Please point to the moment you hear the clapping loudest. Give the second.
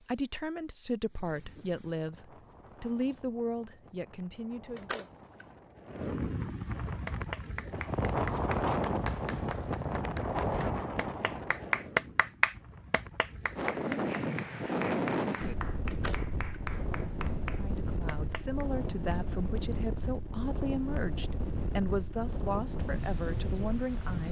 12 s.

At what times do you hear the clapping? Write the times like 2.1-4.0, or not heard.
7.0-18.6.